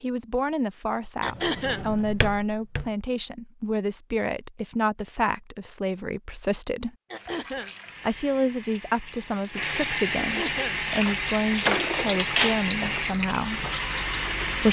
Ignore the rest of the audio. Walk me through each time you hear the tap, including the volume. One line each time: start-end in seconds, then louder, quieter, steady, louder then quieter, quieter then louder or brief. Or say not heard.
7.2-14.6 louder.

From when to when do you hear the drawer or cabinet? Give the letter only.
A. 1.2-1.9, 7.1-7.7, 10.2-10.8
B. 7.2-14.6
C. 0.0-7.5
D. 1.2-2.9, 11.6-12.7
D.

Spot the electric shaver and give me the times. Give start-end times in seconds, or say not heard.
not heard.